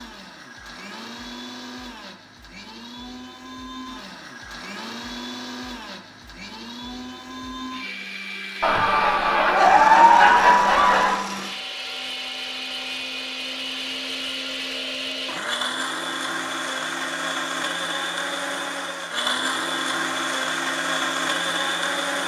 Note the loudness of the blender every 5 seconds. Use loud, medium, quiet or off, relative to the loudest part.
quiet, medium, medium, loud, loud.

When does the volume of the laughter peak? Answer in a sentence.
The loudest moment of the laughter is at 10 seconds.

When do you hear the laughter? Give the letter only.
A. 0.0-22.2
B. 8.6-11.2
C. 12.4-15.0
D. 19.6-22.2
B.